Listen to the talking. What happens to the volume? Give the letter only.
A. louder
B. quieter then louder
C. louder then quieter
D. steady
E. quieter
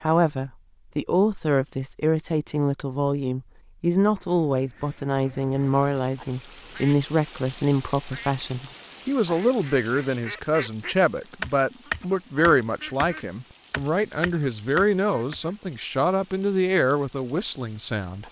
D.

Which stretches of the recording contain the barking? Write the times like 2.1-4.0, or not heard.
not heard.